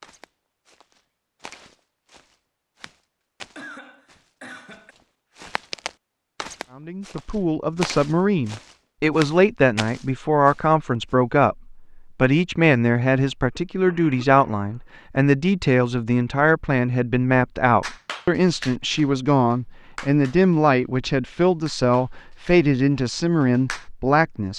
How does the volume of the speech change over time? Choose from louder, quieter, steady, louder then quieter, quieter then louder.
steady.